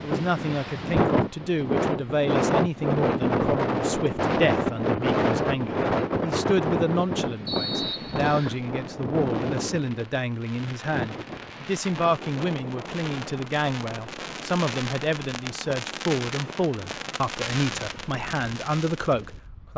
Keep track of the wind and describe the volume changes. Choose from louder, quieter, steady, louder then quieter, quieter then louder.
quieter.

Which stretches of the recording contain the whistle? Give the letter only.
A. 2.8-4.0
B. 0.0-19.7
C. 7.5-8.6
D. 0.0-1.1
C.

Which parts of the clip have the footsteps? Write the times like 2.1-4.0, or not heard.
not heard.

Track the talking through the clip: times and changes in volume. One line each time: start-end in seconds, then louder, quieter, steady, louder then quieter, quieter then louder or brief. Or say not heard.
0.0-19.7 steady.